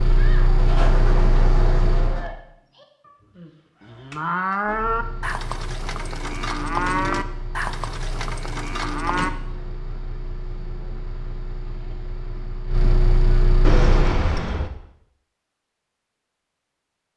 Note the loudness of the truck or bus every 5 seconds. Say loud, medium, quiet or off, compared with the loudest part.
loud, quiet, loud, off.